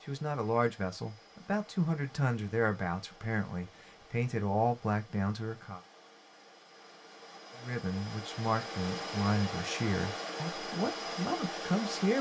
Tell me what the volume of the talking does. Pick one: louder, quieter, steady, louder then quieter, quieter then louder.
steady.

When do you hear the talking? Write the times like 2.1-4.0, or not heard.
0.1-5.8, 7.6-12.1.